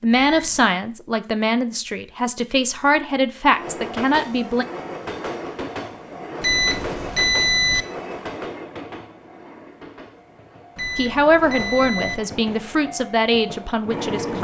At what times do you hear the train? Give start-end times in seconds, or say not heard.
3.5-14.3.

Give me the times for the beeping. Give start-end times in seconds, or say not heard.
0.1-0.7, 6.4-7.8, 10.8-12.2.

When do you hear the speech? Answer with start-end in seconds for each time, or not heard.
0.0-4.7, 10.9-14.3.